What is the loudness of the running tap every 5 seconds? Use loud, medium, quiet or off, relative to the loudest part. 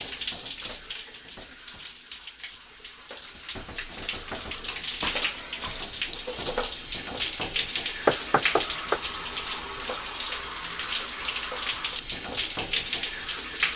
medium, loud, loud.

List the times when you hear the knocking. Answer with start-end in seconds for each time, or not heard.
8.1-9.0.